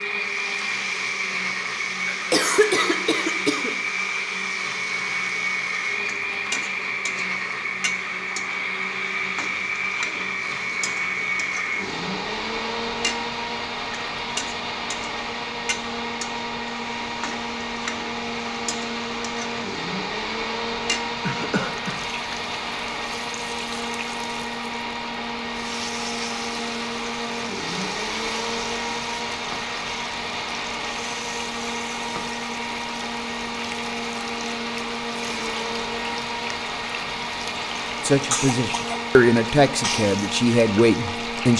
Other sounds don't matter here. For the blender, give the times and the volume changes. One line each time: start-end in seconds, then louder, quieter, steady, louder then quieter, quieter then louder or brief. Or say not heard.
0.0-41.5 steady.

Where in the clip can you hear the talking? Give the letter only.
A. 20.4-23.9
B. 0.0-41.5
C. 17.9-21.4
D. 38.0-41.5
D.